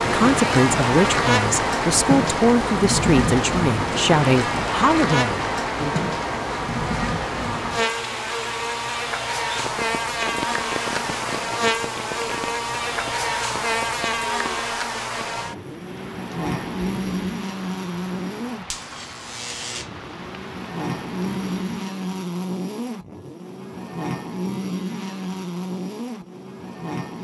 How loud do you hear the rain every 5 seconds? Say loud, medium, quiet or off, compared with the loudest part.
loud, medium, medium, quiet, quiet, off.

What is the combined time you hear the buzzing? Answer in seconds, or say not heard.
27 s.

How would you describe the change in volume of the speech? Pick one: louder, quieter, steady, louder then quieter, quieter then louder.
steady.